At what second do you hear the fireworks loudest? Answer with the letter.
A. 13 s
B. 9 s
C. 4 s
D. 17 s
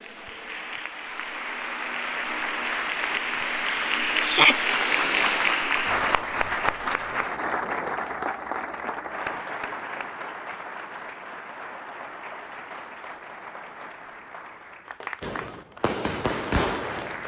D.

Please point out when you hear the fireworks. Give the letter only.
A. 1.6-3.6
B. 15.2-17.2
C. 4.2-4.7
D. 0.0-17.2
B.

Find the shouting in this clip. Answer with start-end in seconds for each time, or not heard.
4.2-4.7.